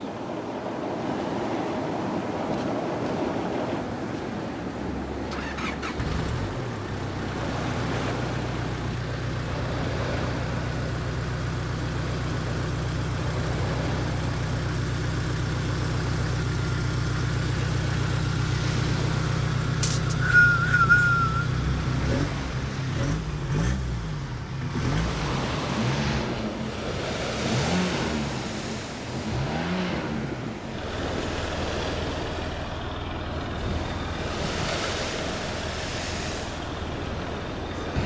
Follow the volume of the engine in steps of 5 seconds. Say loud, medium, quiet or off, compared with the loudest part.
medium, medium, loud, loud, loud, loud, medium, medium.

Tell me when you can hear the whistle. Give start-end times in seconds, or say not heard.
19.8-21.4.